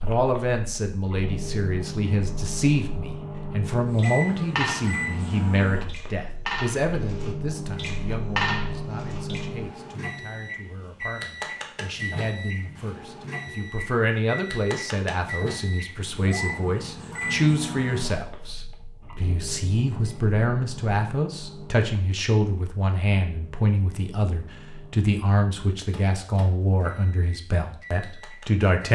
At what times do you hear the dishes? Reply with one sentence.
You can hear the dishes from 4.0 to 9.4 s.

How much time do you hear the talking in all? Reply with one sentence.
You can hear the talking for 29 seconds altogether.